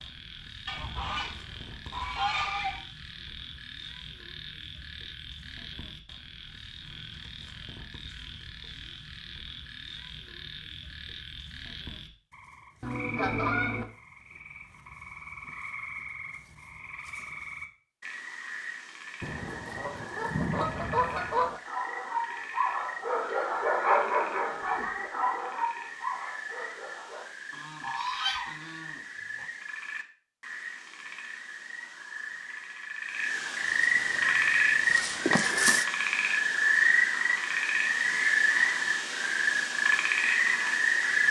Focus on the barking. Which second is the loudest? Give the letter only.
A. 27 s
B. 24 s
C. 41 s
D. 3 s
B.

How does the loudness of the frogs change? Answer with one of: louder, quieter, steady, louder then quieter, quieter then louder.
louder.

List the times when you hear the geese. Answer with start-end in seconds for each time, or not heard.
0.7-2.8, 12.8-13.8, 19.2-21.6, 27.5-29.4, 33.6-35.9.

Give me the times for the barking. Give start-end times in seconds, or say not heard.
21.6-27.2.